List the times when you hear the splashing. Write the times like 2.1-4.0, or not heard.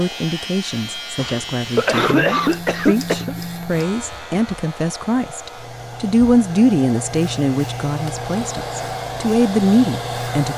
not heard.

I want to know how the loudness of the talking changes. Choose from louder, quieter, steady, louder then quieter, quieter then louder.
louder.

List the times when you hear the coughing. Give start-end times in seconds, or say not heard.
1.1-3.4.